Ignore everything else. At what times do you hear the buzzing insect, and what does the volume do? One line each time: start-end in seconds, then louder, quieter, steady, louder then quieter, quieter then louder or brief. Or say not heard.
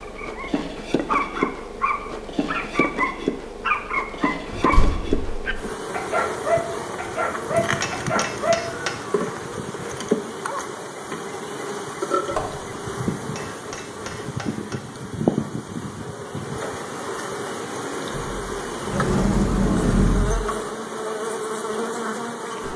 0.0-22.7 steady.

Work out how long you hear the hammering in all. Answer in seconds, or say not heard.
3 s.